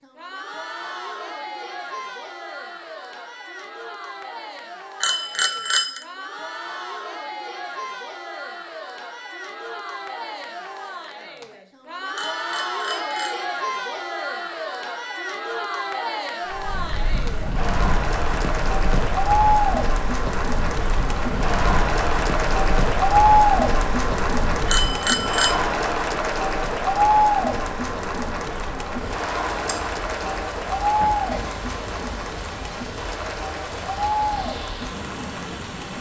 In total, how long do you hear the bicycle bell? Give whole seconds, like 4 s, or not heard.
3 s.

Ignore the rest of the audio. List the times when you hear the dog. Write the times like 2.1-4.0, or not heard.
not heard.